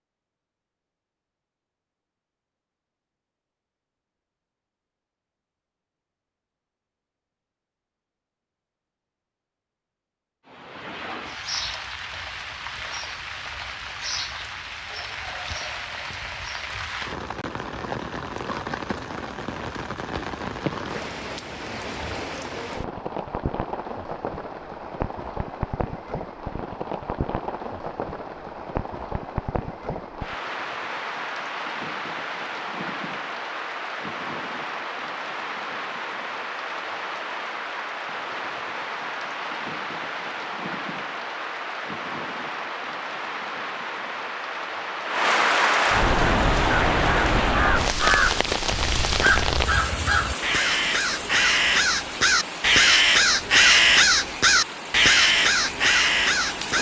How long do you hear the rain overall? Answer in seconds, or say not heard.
46 s.